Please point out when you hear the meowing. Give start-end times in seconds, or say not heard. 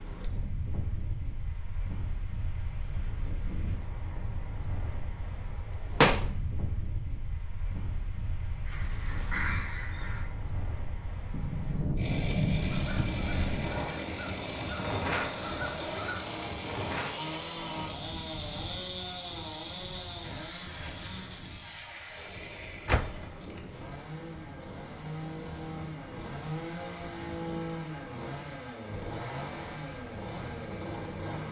not heard.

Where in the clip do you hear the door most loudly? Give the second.
6 s.